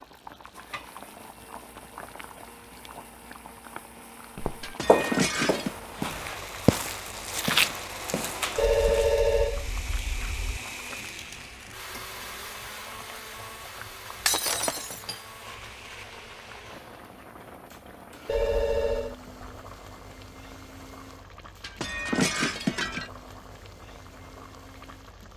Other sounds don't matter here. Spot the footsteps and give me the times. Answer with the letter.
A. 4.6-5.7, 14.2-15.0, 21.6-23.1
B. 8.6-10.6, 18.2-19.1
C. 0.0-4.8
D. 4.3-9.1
D.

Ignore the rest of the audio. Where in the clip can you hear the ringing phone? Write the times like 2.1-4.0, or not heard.
8.6-10.6, 18.2-19.1.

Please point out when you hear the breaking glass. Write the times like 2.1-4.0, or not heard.
4.6-5.7, 14.2-15.0, 21.6-23.1.